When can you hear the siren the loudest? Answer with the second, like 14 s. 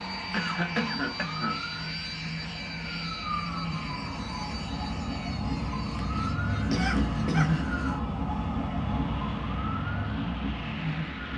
7 s.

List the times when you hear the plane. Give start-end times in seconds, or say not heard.
0.0-11.3.